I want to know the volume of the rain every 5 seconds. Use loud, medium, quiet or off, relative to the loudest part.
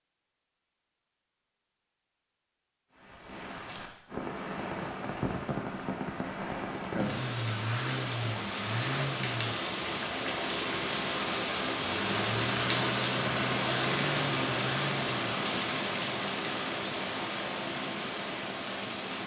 medium, medium, loud, loud.